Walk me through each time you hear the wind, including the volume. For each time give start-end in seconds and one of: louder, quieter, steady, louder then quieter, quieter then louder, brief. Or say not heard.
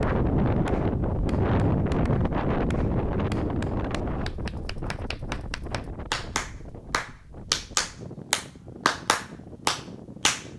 0.0-10.5 quieter.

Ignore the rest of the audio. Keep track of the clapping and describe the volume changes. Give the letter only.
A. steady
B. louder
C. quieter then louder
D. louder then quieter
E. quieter
B.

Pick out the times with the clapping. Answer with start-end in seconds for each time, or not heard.
0.0-10.4.